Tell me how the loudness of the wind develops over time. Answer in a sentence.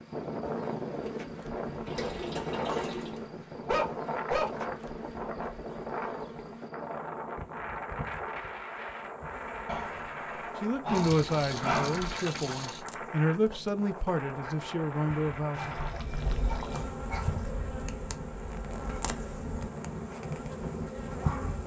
The volume of the wind goes down.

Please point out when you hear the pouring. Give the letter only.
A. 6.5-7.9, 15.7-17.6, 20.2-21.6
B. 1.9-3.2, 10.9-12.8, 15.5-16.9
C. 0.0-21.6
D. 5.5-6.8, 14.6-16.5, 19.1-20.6
B.